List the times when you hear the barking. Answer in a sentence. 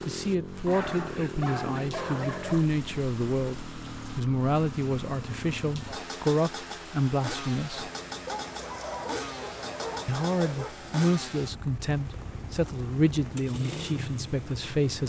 The barking can be heard from 0.7 to 2.6 s and from 8.2 to 10.8 s.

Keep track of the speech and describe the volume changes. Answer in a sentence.
The volume of the speech stays about the same.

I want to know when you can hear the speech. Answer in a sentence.
You can hear the speech from 0.1 to 7.9 s and from 10.1 to 15.0 s.